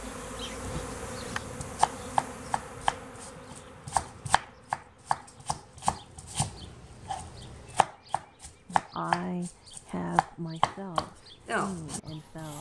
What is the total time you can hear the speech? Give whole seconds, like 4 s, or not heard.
4 s.